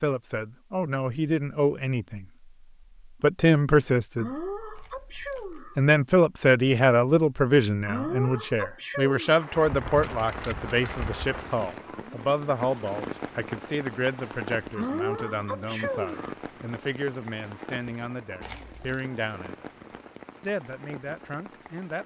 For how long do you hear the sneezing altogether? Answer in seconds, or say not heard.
5 s.